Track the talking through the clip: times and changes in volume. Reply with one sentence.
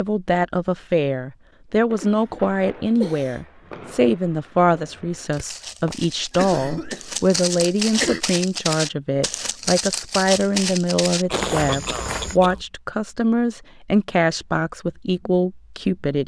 You can hear the talking from 0.0 to 16.2 s, at a steady volume.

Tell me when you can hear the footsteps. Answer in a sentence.
The footsteps can be heard from 5.3 to 12.3 s.